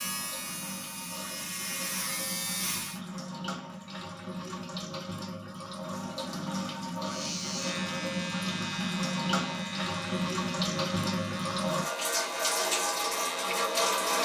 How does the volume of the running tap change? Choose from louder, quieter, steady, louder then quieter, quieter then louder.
louder.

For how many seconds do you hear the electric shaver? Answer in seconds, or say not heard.
10 s.